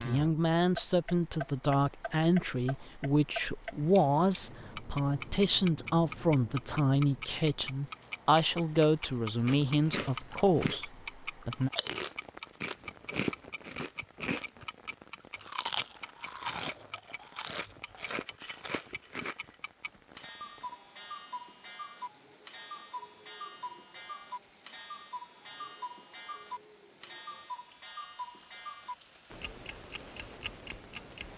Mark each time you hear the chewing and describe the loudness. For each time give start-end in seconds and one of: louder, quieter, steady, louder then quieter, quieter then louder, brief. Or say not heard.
9.4-10.8 brief
11.4-19.4 quieter.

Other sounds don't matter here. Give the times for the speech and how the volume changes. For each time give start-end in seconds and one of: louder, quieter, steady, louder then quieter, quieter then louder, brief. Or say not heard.
0.0-11.7 steady.